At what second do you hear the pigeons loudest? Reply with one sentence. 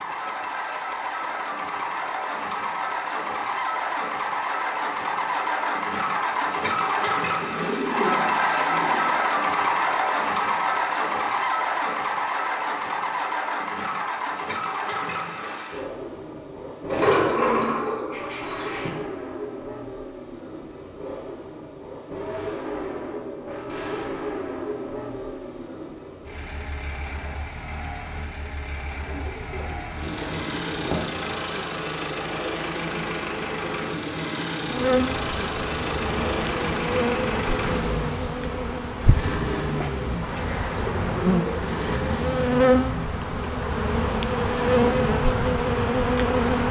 The loudest moment of the pigeons is at 17 seconds.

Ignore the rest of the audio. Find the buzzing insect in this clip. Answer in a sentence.
You can hear the buzzing insect from 34.6 to 46.6 s.